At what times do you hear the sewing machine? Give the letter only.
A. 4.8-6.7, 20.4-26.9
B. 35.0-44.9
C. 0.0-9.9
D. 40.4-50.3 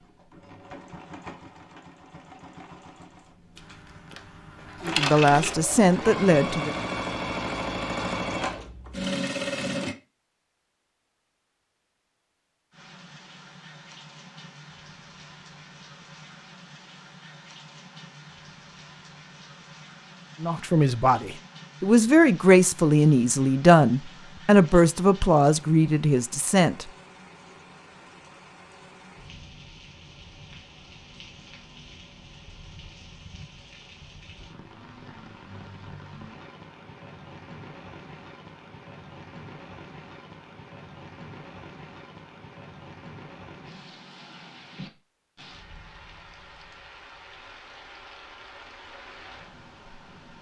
C.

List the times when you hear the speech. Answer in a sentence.
You can hear the speech from 4.8 to 6.7 s and from 20.4 to 26.9 s.